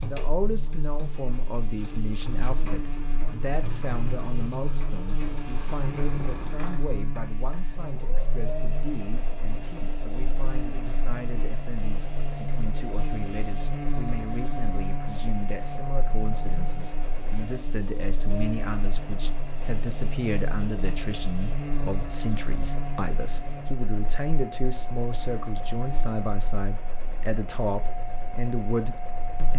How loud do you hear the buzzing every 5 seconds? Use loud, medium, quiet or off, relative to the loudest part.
loud, loud, loud, loud, loud, medium.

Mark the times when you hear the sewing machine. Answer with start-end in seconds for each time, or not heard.
0.0-29.5.